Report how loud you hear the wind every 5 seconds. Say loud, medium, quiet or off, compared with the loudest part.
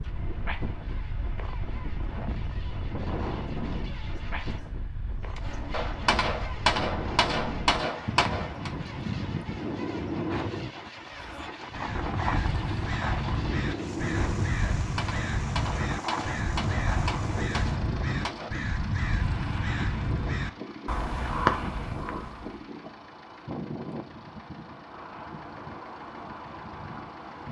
loud, loud, loud, loud, medium, medium.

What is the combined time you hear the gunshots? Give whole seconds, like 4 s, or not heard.
7 s.